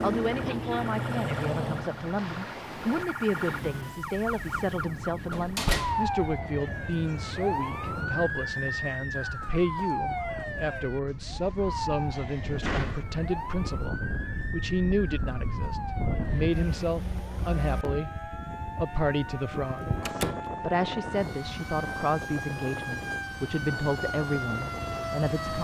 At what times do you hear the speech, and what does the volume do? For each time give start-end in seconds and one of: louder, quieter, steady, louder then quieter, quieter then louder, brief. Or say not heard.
0.0-25.5 steady.